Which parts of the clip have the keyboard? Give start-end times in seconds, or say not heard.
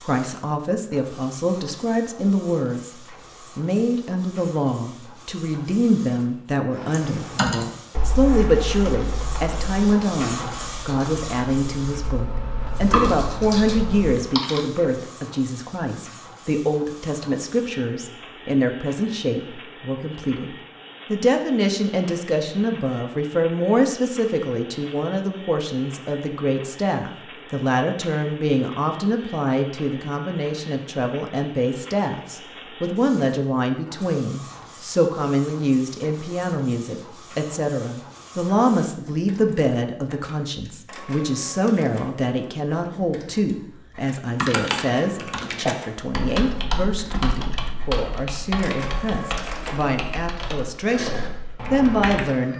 6.8-14.7, 44.4-52.2.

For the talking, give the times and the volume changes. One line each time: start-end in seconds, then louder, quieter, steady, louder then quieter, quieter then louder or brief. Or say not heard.
0.0-52.5 steady.